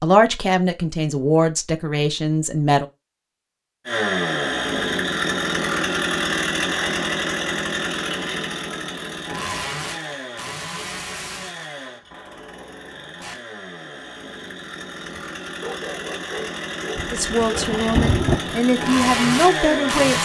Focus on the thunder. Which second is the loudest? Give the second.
18 s.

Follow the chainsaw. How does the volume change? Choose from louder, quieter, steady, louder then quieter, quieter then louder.
quieter then louder.